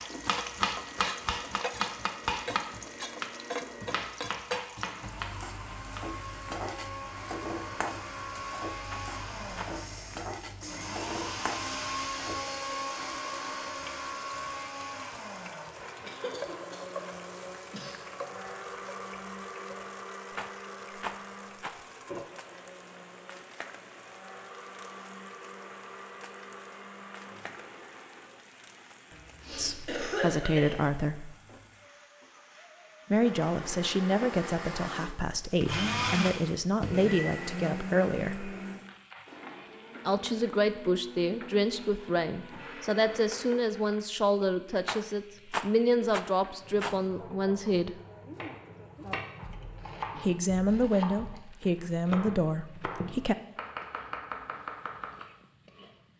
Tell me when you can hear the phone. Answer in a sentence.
The phone can't be heard in this clip.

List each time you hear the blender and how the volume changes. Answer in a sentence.
The blender can be heard from 0.0 to 28.5 s, getting louder then quieter; and from 33.1 to 43.5 s, getting louder then quieter.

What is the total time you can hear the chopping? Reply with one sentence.
You can hear the chopping for 13 seconds altogether.